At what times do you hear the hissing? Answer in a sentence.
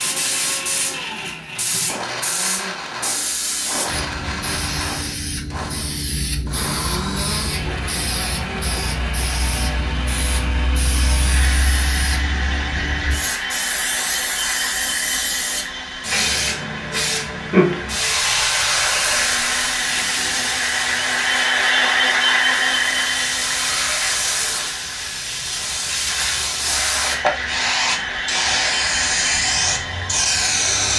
The hissing can be heard from 0.0 to 30.9 s.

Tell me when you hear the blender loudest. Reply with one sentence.
The volume of the blender peaks at 22 seconds.